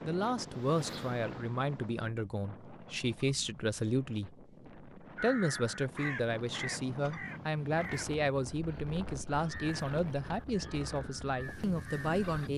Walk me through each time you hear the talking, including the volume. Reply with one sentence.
The talking can be heard from 0.0 to 12.5 s, at a steady volume.